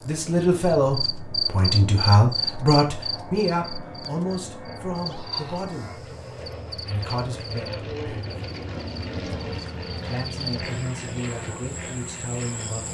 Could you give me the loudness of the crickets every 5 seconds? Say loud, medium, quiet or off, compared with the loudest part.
loud, medium, medium.